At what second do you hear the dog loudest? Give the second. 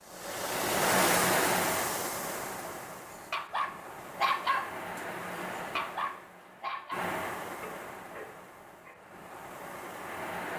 4 s.